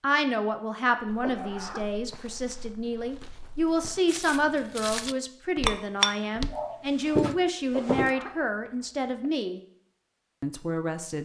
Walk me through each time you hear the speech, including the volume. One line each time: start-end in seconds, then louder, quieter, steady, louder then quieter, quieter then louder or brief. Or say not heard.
0.0-9.6 steady
10.4-11.2 brief.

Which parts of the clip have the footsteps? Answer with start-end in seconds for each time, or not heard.
1.1-8.2.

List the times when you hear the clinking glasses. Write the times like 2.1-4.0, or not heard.
5.7-6.8.